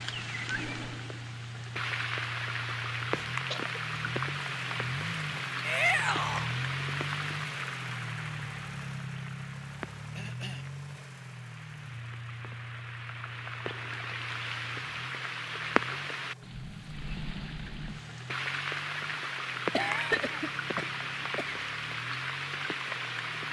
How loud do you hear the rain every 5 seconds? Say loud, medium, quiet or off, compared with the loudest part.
loud, loud, medium, loud, loud.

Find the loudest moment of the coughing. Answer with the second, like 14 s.
20 s.